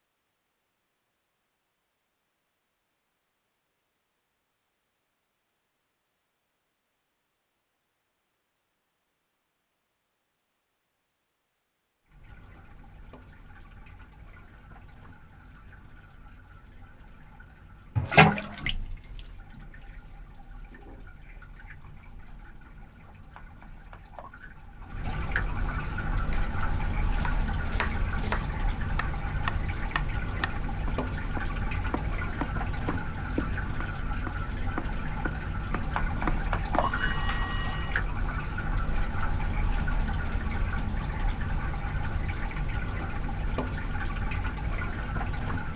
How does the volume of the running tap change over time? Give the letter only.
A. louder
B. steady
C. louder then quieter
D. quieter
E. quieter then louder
E.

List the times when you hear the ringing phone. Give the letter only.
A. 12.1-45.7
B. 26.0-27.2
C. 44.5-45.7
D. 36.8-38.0
D.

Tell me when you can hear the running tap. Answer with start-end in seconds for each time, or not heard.
12.1-45.7.